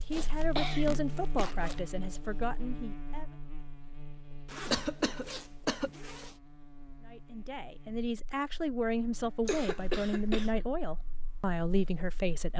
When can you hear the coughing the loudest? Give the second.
5 s.